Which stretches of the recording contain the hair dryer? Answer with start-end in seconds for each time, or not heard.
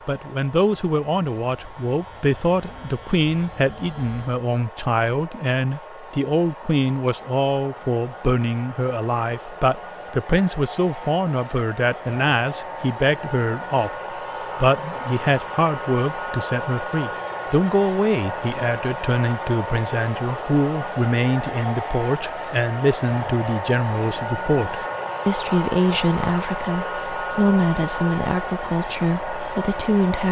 0.0-30.2.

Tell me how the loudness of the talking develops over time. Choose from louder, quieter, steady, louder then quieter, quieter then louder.
steady.